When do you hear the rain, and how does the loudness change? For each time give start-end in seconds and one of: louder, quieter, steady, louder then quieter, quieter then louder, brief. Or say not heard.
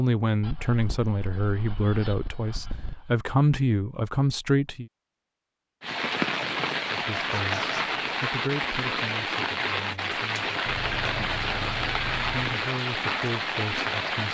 5.8-14.2 steady.